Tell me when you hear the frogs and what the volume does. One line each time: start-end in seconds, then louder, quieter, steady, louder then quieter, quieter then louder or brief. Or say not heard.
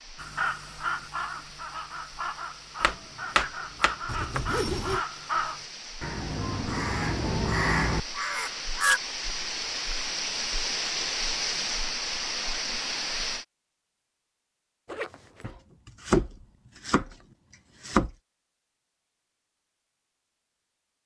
not heard.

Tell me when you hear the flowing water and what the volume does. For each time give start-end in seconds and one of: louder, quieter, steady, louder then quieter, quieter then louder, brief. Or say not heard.
0.0-13.4 louder.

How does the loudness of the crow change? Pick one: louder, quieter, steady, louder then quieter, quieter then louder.
louder.